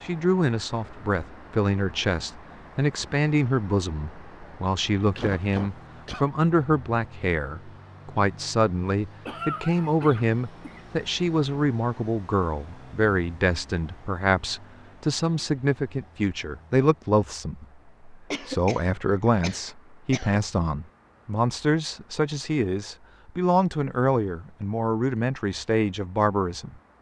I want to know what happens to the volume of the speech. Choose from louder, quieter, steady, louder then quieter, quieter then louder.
steady.